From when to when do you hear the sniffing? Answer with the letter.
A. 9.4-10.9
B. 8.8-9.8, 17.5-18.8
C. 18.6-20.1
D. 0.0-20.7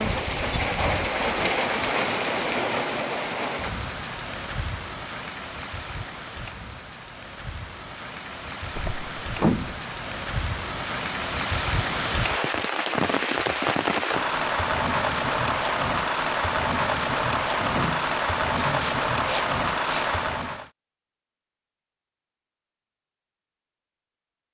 C.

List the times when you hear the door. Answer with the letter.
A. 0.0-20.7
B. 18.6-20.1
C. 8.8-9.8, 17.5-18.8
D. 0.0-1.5
C.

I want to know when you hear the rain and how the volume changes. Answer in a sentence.
The rain can be heard from 0.0 to 20.7 s, getting quieter then louder.